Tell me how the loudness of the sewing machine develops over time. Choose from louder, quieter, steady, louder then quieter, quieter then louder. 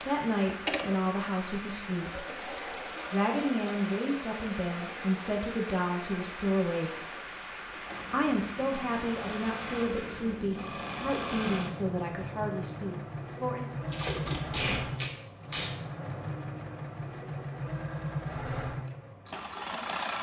quieter then louder.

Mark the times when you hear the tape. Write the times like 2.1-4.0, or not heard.
13.8-15.7.